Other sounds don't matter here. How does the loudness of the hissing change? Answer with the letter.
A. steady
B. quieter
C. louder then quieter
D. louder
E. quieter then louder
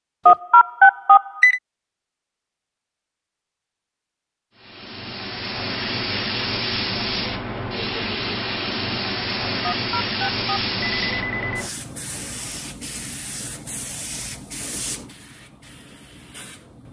B.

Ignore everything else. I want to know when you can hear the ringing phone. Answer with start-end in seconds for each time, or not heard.
0.2-1.6, 9.7-11.7.